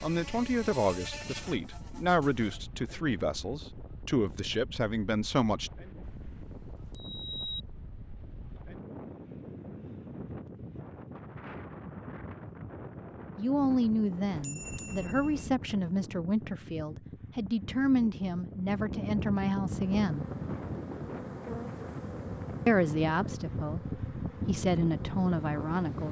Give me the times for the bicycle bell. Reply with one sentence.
You can hear the bicycle bell from 6.2 to 7.6 s and from 14.3 to 15.6 s.